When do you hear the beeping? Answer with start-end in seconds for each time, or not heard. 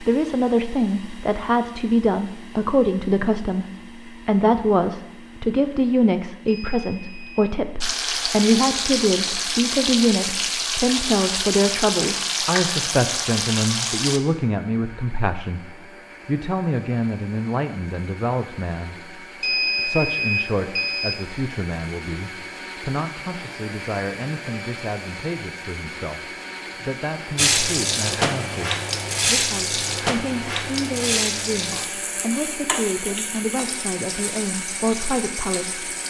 6.5-7.5, 19.4-21.2.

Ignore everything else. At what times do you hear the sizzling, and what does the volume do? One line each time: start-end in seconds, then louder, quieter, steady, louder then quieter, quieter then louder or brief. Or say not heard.
7.8-14.2 steady
27.4-36.0 quieter.